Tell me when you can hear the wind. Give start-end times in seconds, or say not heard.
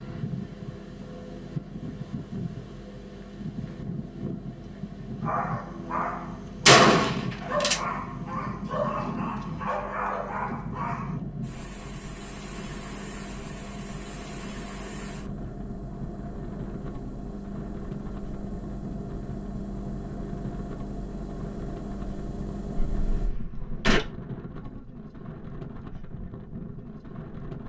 0.0-27.6.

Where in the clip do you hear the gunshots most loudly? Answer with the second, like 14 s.
7 s.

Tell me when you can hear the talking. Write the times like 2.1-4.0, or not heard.
not heard.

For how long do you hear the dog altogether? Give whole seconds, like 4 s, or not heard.
6 s.